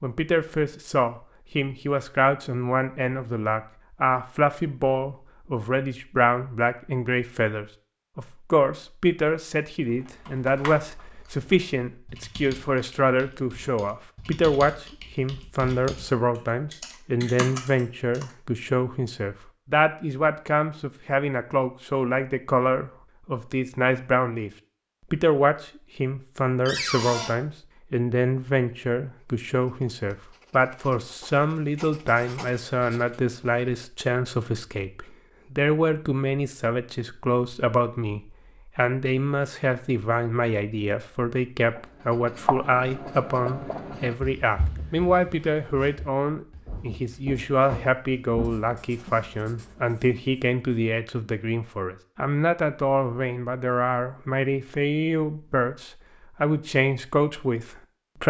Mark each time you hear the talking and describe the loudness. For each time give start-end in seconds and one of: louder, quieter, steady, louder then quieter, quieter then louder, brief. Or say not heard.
0.0-24.5 steady
25.1-58.2 steady.